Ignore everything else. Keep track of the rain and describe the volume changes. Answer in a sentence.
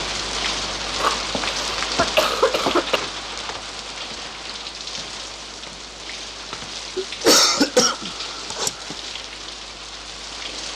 The volume of the rain goes down.